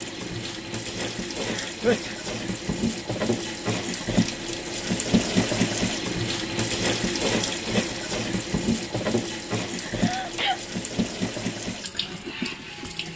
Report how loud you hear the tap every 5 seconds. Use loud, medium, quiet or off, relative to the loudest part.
loud, loud, medium.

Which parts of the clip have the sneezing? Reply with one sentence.
You can hear the sneezing from 1.4 to 2.1 s and from 9.8 to 10.6 s.